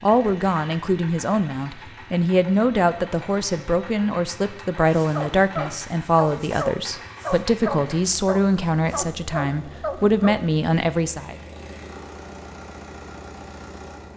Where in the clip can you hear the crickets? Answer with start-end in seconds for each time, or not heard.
not heard.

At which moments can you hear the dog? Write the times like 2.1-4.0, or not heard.
4.8-10.4.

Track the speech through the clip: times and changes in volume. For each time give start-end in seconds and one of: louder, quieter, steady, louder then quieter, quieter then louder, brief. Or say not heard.
0.0-11.3 steady.